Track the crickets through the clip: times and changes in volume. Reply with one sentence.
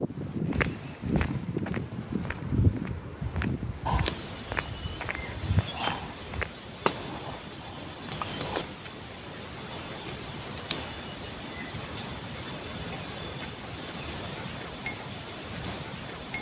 You can hear the crickets from 0.0 to 16.3 s, at a steady volume.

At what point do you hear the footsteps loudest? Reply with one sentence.
The volume of the footsteps peaks at 3 seconds.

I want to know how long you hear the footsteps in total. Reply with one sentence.
You can hear the footsteps for 6 seconds altogether.